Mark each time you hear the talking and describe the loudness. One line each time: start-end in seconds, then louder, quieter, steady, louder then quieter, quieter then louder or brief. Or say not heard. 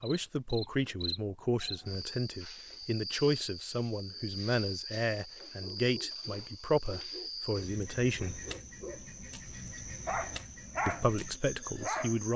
0.0-8.4 steady
10.8-12.3 brief.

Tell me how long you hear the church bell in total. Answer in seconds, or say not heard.
not heard.